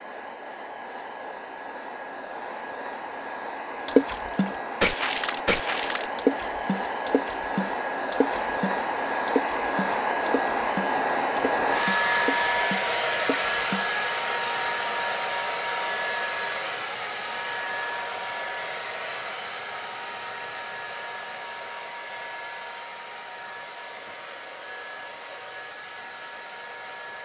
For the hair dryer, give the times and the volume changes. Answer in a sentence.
You can hear the hair dryer from 0.0 to 27.2 s, getting louder then quieter.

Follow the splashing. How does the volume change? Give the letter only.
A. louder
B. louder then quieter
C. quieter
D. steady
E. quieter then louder
C.